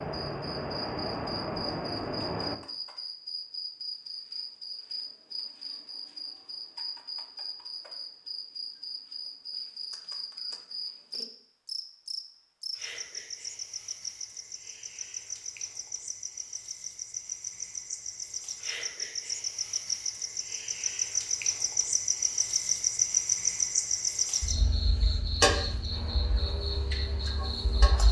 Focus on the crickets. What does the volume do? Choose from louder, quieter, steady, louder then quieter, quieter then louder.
louder.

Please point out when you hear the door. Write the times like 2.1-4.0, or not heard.
not heard.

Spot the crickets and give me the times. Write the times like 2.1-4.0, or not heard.
0.0-28.0.